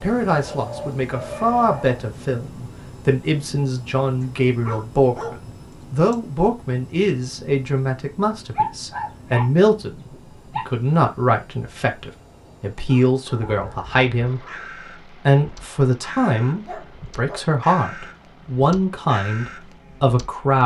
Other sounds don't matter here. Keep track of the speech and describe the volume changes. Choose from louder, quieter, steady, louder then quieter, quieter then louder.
steady.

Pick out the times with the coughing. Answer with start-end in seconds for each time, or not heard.
not heard.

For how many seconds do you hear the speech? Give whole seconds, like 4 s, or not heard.
20 s.